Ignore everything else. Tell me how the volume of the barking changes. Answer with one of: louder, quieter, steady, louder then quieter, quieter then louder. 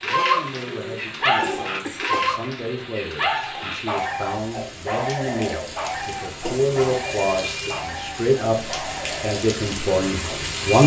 quieter.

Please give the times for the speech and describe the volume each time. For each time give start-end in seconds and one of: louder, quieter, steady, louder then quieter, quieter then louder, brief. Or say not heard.
0.0-10.8 louder.